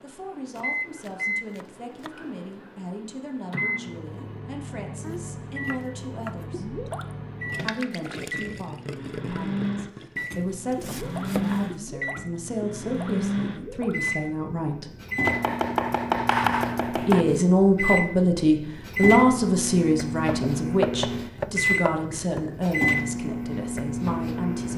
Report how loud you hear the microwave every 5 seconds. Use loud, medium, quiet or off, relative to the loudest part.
medium, medium, loud, loud, loud.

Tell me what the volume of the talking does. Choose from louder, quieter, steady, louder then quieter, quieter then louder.
louder then quieter.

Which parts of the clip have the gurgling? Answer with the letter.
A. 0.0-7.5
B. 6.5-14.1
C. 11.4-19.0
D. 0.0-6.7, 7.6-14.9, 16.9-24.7
B.